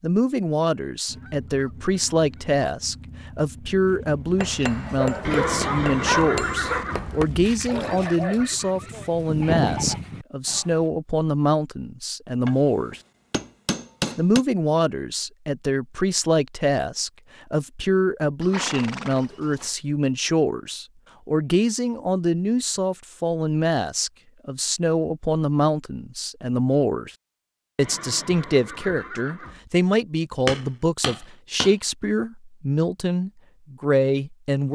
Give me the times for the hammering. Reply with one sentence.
The hammering can be heard from 4.4 to 7.3 s, from 12.4 to 14.4 s and from 30.4 to 31.8 s.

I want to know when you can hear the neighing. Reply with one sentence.
You can hear the neighing from 5.2 to 7.1 s, from 18.4 to 19.7 s and from 27.8 to 29.6 s.